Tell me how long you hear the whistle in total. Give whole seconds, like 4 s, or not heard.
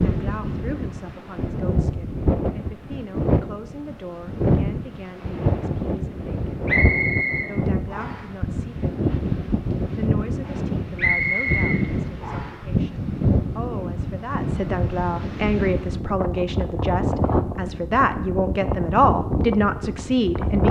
3 s.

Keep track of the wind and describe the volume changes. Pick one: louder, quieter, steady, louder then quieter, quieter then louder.
steady.